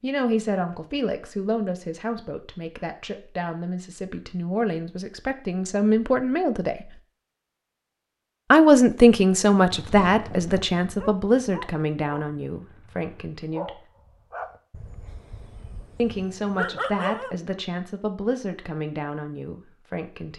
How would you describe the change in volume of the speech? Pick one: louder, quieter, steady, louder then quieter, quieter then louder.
louder then quieter.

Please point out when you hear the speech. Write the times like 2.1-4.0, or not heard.
0.0-6.9, 8.5-13.7, 15.9-20.3.